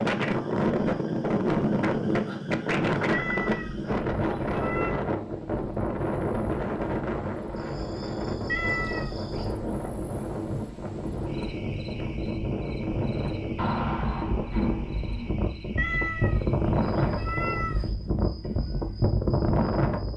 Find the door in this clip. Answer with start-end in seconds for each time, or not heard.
13.6-15.3.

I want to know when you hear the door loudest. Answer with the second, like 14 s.
14 s.